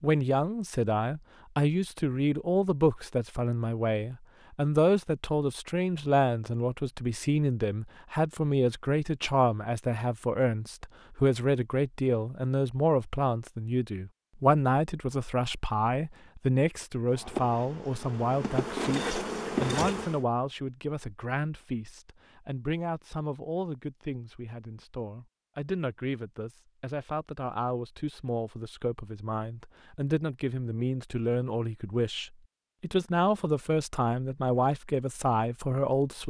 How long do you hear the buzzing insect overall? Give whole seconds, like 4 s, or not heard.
3 s.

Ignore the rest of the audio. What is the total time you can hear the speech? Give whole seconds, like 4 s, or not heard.
36 s.